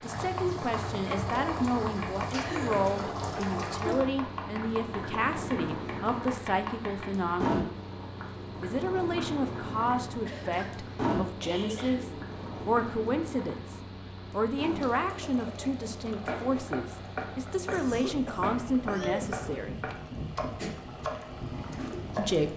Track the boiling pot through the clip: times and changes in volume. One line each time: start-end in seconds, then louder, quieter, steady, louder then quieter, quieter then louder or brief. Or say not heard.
0.0-22.5 quieter.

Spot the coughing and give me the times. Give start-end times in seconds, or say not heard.
2.4-3.2, 10.2-12.2, 17.6-19.4.